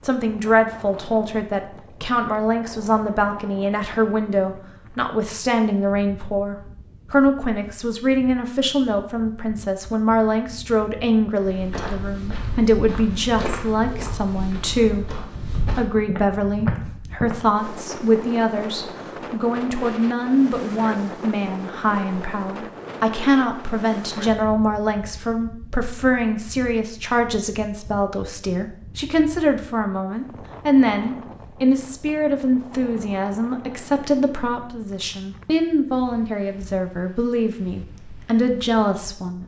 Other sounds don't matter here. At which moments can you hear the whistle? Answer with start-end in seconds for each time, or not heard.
not heard.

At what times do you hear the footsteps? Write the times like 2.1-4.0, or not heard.
11.3-17.4.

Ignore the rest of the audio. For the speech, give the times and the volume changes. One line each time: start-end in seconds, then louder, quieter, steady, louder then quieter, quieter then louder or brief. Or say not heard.
0.0-39.4 steady.